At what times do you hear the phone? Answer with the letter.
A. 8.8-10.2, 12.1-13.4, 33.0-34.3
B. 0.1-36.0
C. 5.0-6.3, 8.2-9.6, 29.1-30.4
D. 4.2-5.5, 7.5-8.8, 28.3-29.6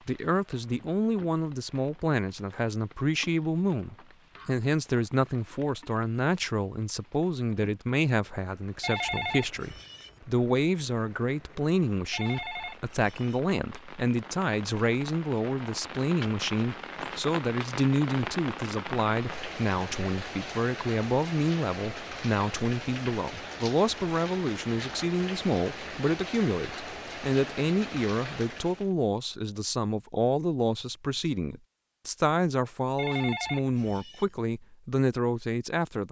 A.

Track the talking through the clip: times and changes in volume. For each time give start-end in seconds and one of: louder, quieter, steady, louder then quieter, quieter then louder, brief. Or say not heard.
0.1-36.0 steady.